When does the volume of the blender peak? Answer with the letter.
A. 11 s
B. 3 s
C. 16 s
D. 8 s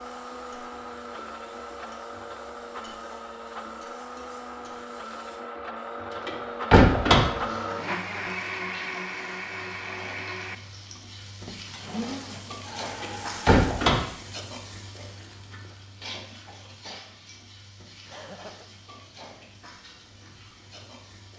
D.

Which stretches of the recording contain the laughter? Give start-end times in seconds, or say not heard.
18.1-18.6.